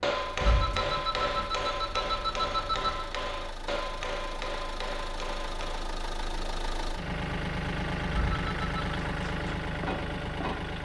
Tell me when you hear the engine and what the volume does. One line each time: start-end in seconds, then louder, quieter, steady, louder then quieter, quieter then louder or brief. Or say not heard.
0.1-10.8 louder.